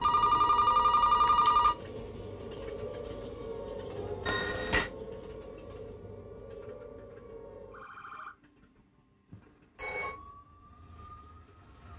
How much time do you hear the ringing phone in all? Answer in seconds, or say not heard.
3 s.